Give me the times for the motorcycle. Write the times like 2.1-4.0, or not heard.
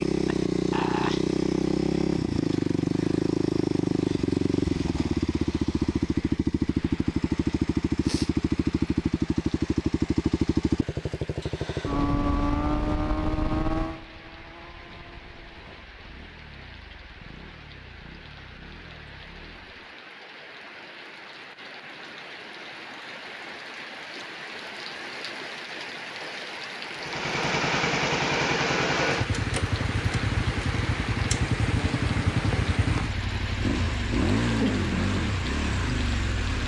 0.0-19.9, 26.9-36.6.